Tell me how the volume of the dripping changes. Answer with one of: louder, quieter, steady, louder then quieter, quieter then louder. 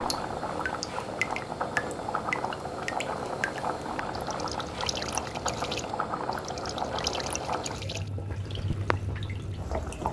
quieter.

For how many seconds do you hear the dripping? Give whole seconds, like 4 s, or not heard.
10 s.